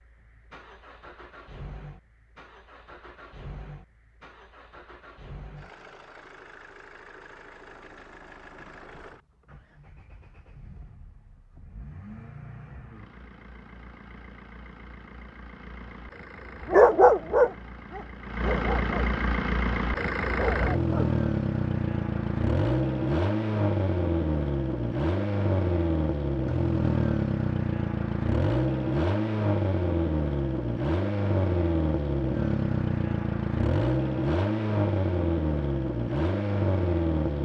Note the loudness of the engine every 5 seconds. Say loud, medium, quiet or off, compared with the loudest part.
quiet, quiet, quiet, medium, loud, loud, loud, loud.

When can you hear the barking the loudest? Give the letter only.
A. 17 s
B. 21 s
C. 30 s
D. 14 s
A.